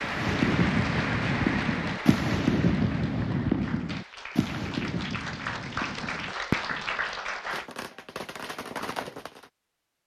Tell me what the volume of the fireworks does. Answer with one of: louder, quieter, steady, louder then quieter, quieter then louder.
quieter.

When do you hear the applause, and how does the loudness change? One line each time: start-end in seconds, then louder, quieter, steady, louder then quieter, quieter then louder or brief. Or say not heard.
0.0-7.7 quieter then louder.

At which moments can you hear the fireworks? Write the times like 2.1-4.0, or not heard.
0.0-9.5.